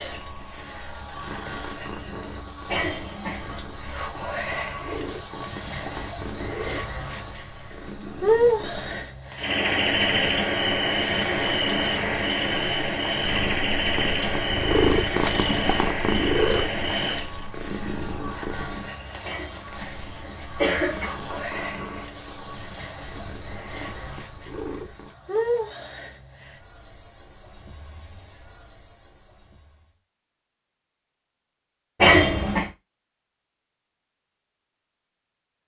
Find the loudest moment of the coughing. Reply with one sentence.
The volume of the coughing peaks at 32 seconds.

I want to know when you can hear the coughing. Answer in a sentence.
The coughing can be heard from 2.6 to 3.5 s, from 19.2 to 21.1 s and from 32.0 to 32.7 s.